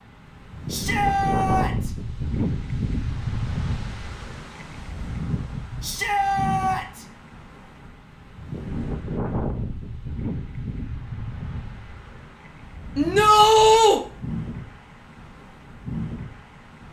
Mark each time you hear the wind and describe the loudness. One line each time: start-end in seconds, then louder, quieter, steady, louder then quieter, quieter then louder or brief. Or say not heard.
0.0-16.8 quieter.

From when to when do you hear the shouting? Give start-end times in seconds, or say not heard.
0.7-1.9, 5.8-7.0, 12.9-14.0.